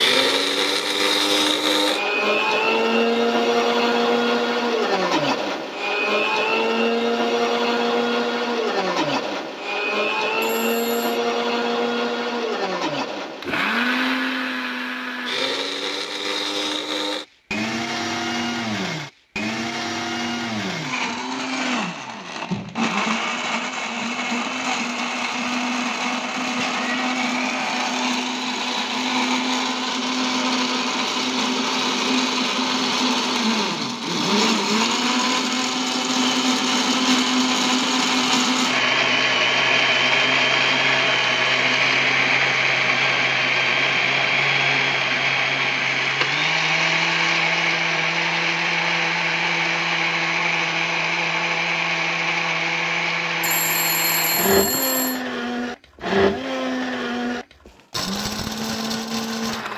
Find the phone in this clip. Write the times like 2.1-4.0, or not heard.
10.6-11.2, 53.4-55.2.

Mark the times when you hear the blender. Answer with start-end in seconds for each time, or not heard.
0.0-59.7.